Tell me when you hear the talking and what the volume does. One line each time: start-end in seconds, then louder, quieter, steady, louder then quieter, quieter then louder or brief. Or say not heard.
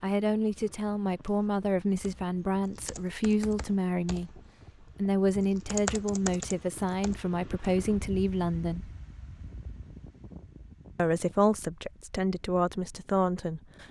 0.0-8.9 steady
10.9-13.8 brief.